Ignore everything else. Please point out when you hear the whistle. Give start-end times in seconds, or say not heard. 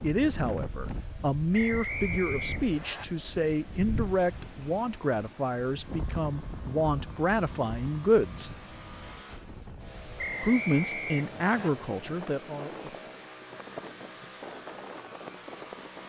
1.5-3.0, 10.2-11.7.